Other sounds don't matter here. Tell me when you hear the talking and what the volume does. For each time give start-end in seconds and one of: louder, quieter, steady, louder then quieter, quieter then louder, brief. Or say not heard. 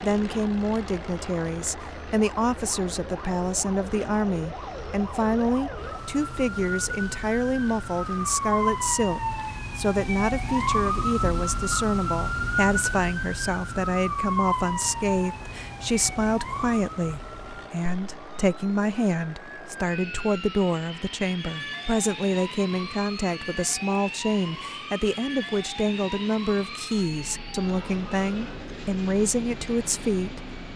0.0-30.4 steady.